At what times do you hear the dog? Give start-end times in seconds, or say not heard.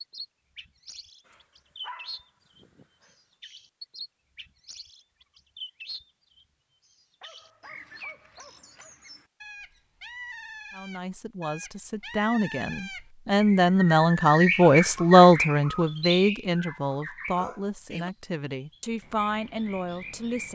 1.2-3.1, 7.2-8.9, 17.4-18.1.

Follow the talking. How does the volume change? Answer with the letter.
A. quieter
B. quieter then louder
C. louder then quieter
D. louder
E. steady
C.